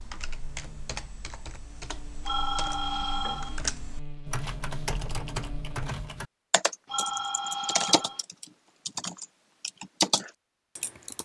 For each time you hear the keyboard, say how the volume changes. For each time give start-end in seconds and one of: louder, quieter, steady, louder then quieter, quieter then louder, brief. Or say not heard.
0.0-11.2 louder.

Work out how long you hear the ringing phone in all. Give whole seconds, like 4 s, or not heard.
3 s.